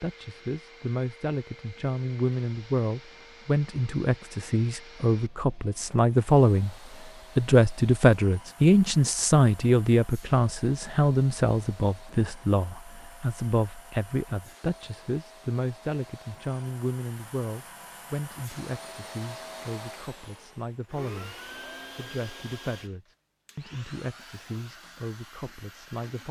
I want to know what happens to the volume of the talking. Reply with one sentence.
The volume of the talking goes up, then down.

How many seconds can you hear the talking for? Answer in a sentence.
The talking can be heard for 25 seconds in total.